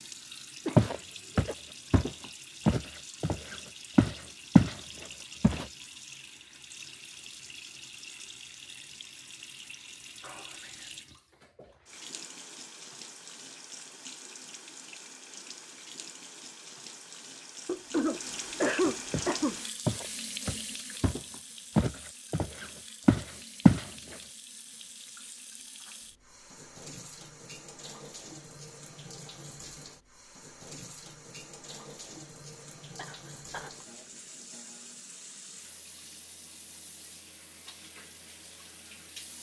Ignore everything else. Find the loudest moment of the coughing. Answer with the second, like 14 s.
19 s.